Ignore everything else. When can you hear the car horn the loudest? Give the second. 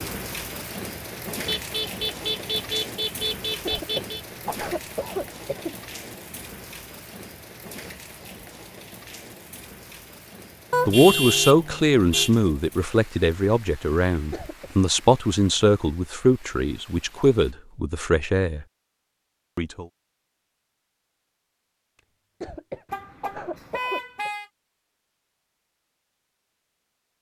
11 s.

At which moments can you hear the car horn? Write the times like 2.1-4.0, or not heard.
1.4-4.2, 10.7-12.3, 22.9-24.4.